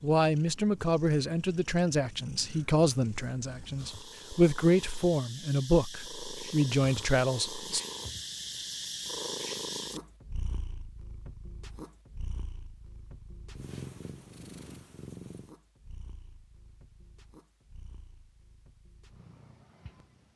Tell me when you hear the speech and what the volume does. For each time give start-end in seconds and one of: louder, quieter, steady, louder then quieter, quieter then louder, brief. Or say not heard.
0.0-7.8 steady.